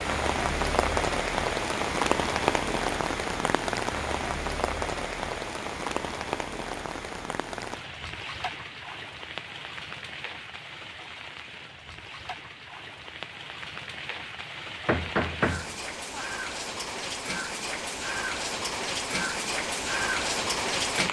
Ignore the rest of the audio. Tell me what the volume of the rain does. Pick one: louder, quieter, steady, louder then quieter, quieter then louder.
quieter then louder.